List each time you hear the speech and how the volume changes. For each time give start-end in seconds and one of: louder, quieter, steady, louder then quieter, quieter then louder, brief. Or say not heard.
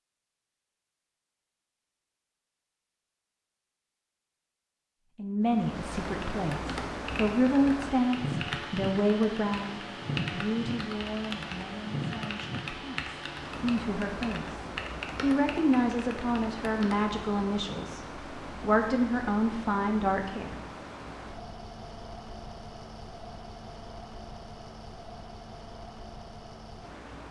5.2-20.6 quieter then louder.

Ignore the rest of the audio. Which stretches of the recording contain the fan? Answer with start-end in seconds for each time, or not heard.
5.5-27.2.